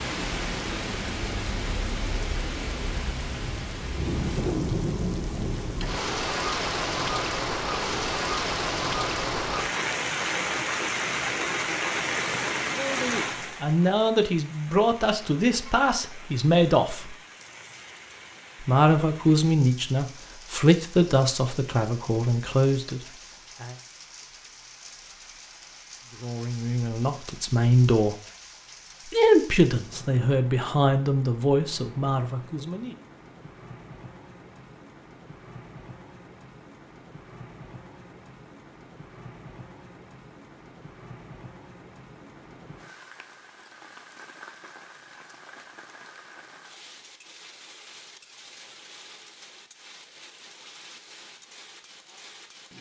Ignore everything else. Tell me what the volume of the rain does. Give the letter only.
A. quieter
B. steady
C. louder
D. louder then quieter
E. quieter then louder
A.